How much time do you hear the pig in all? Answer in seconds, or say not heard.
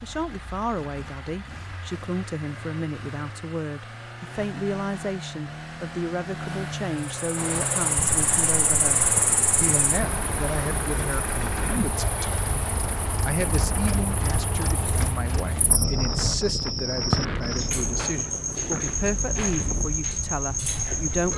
not heard.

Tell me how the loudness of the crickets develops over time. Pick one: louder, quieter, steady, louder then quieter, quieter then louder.
quieter then louder.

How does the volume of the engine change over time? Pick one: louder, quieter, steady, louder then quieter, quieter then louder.
louder then quieter.